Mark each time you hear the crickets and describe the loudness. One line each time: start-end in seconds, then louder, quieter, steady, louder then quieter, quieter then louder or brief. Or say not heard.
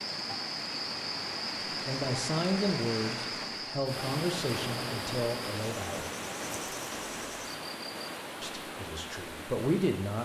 0.0-8.1 quieter.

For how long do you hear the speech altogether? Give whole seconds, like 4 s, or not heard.
6 s.